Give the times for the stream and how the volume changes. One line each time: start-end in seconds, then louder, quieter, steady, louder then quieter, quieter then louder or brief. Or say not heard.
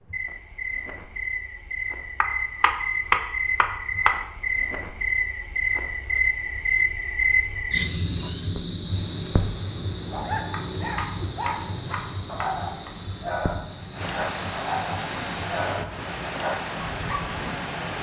8.7-17.9 louder.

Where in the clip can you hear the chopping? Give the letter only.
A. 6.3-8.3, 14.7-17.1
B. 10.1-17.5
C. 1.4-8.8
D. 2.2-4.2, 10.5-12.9
D.